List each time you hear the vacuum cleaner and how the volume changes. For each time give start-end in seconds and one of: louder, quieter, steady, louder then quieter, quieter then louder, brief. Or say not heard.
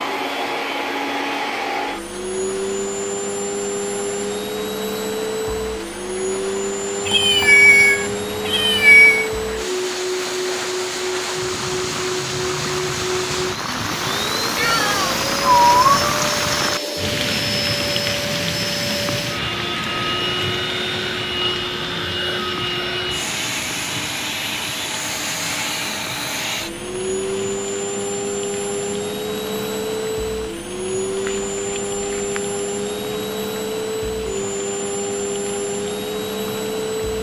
0.0-37.1 steady.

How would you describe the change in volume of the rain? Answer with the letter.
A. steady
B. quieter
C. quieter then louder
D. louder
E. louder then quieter
E.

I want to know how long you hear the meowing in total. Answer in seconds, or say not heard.
5 s.